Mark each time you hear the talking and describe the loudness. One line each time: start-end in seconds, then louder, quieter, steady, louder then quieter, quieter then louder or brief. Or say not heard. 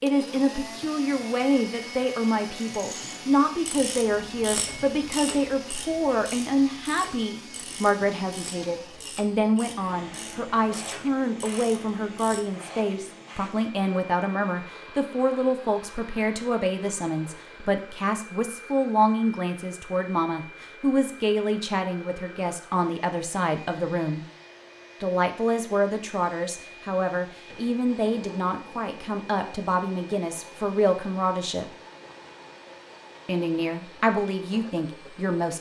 0.0-24.2 steady
25.0-31.6 steady
33.2-35.5 brief.